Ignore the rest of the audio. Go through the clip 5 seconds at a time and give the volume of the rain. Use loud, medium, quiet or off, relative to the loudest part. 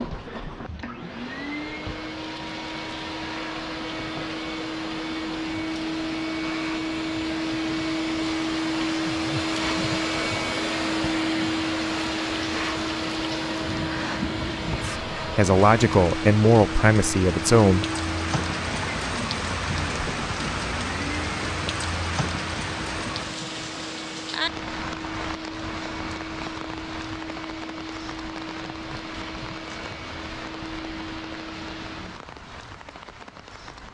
quiet, medium, medium, loud, loud, medium, medium.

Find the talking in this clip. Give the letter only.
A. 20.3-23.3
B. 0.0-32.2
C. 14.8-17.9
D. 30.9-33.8
C.